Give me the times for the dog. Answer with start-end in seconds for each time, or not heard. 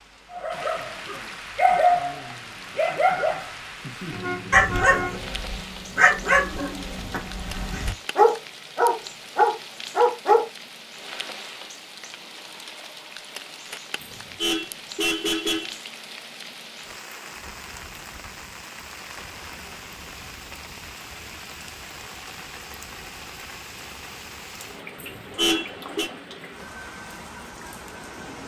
0.3-10.4.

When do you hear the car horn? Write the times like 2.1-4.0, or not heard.
4.1-5.2, 14.0-15.8, 24.9-26.1.